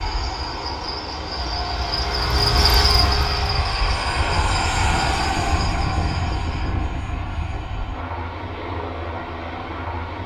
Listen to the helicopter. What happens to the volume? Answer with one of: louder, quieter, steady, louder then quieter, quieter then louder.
louder then quieter.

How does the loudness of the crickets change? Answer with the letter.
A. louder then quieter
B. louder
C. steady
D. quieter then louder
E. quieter
A.